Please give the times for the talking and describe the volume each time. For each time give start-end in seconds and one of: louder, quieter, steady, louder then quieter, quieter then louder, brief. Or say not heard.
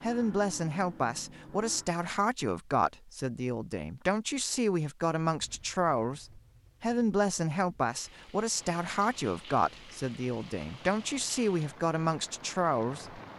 0.0-13.2 steady.